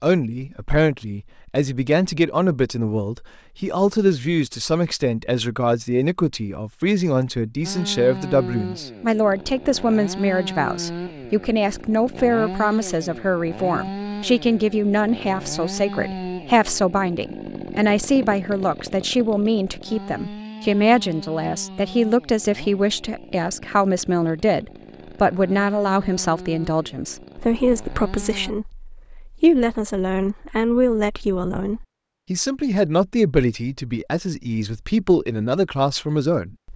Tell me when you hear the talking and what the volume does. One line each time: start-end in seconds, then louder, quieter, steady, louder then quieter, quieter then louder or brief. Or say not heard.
0.0-36.7 steady.